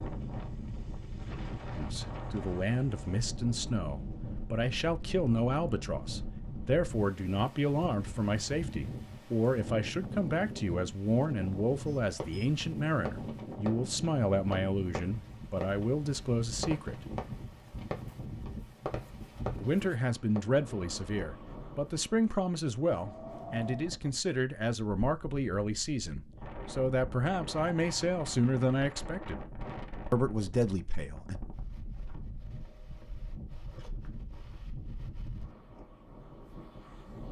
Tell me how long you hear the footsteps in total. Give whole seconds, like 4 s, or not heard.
not heard.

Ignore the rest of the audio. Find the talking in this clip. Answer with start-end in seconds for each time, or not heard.
1.8-17.1, 19.6-29.4, 30.1-31.4.